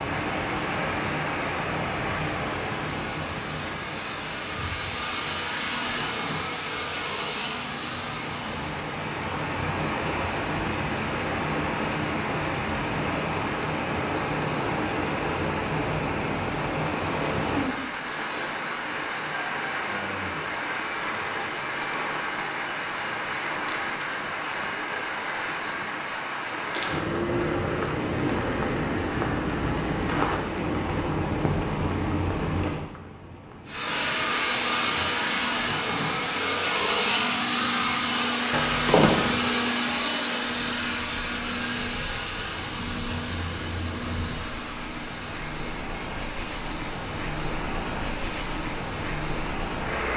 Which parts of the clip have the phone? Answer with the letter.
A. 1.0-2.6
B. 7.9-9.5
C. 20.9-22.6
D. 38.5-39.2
D.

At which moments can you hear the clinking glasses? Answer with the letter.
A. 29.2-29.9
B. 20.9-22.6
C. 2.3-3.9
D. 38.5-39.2
B.